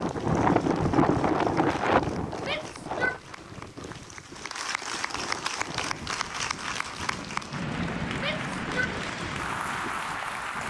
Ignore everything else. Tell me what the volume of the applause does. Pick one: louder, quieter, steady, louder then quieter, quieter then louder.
louder.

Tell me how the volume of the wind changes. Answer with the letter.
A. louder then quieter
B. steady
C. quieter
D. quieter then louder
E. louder
C.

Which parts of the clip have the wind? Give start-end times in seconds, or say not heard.
0.0-10.6.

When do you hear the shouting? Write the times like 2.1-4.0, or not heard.
2.4-3.2, 8.2-8.9.